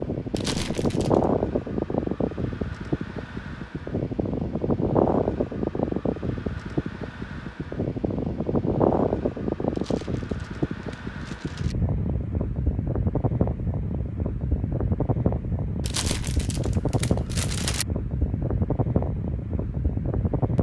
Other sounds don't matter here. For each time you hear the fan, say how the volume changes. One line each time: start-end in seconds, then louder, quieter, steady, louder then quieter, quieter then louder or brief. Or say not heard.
0.0-20.5 steady.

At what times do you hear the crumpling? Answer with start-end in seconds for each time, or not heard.
0.3-1.3, 9.7-11.8, 15.8-17.9.